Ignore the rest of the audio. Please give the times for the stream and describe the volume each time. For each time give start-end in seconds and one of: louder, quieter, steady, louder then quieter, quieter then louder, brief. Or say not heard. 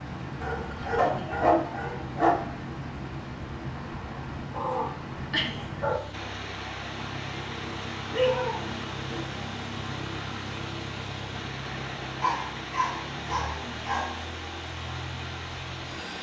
0.0-16.1 steady.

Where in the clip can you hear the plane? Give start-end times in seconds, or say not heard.
0.0-16.1.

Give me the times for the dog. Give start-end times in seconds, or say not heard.
0.4-2.4, 4.5-6.0, 8.1-9.2, 12.2-14.1.